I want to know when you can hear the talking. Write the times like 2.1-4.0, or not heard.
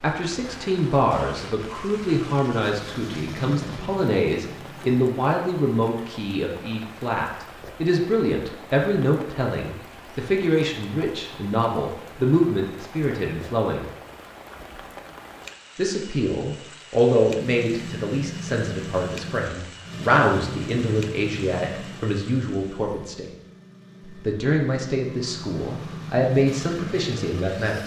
0.0-13.9, 15.8-23.3, 24.1-27.8.